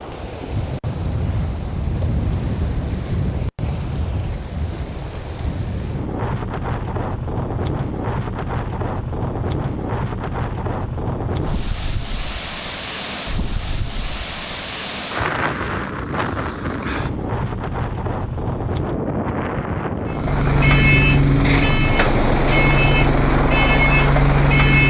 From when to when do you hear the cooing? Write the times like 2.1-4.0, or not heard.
not heard.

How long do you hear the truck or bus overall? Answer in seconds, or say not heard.
5 s.